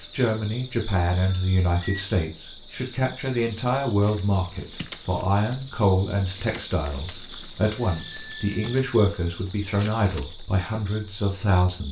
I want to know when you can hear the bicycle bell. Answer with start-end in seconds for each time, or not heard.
1.1-2.0, 7.8-8.8.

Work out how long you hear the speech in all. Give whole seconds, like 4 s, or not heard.
12 s.